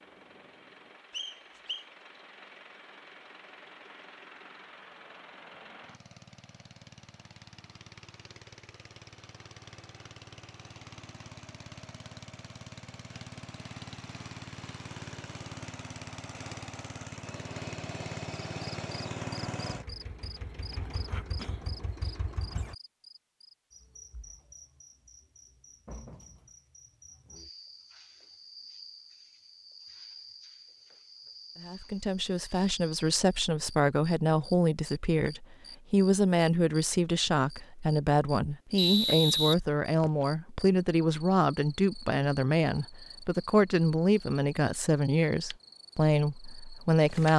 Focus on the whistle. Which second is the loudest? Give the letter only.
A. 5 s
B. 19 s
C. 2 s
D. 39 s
D.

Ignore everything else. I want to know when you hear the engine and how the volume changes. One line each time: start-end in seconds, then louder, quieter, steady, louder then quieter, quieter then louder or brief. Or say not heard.
0.0-22.8 louder.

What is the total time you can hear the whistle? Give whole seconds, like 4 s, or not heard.
2 s.